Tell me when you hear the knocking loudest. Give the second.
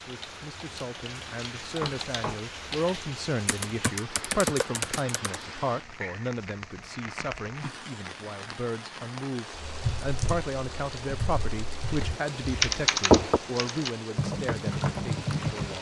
13 s.